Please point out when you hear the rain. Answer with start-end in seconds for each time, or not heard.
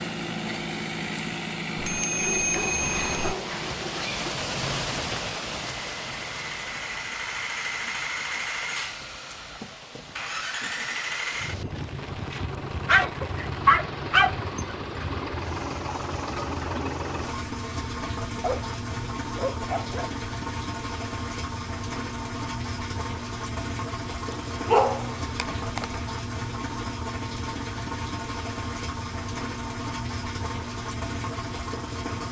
0.0-17.4.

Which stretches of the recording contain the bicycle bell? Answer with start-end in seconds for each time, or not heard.
1.8-3.4.